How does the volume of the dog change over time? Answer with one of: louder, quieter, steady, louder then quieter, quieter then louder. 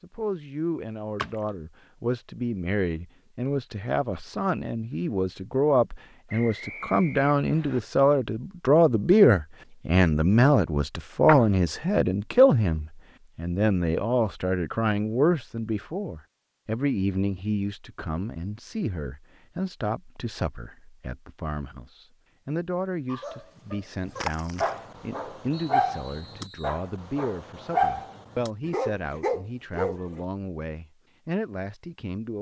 quieter then louder.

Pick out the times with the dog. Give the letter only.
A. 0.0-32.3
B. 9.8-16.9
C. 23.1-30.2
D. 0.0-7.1
C.